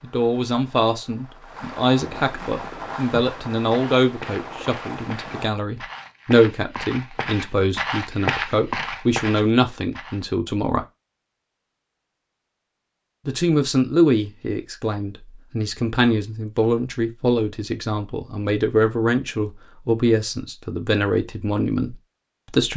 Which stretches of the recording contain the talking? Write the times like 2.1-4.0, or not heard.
0.0-10.8, 13.2-22.7.